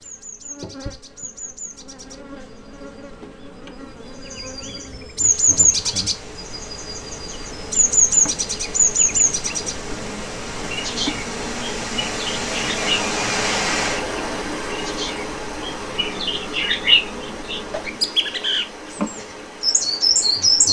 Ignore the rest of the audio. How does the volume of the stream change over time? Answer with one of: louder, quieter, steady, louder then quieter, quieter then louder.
louder then quieter.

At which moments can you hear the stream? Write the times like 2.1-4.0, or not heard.
5.2-20.6.